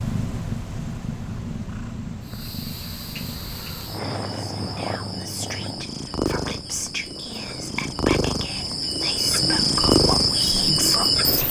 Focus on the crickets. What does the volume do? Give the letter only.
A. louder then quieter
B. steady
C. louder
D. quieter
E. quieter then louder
C.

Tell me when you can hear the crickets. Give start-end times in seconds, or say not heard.
2.2-11.4.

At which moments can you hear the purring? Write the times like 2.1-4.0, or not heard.
0.0-11.4.